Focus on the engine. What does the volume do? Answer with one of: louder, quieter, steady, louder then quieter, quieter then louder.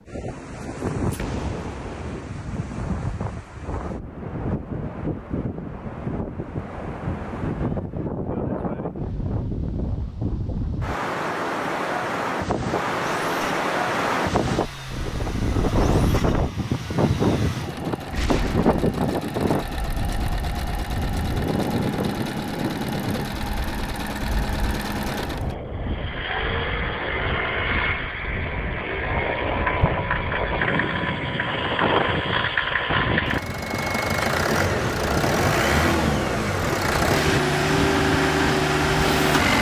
louder.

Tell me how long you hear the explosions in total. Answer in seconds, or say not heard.
2 s.